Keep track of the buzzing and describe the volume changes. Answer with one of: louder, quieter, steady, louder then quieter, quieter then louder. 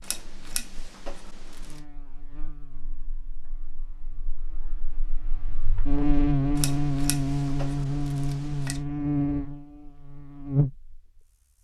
quieter then louder.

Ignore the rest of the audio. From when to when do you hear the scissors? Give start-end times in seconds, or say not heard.
0.0-1.8, 6.5-8.8.